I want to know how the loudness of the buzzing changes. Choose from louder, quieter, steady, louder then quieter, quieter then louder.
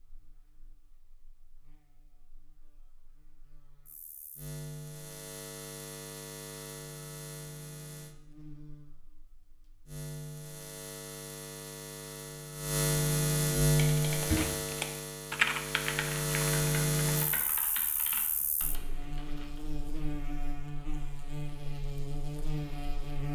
louder then quieter.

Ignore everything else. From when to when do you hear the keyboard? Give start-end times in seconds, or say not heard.
13.8-19.6.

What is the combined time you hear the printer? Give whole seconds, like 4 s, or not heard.
not heard.